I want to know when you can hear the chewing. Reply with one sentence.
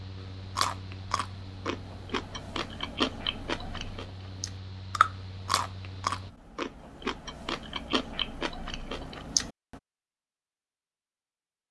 The chewing can be heard from 0.6 to 9.8 s.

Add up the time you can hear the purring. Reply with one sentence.
The purring can't be heard in this clip.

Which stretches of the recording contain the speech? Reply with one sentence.
You can't hear the speech here.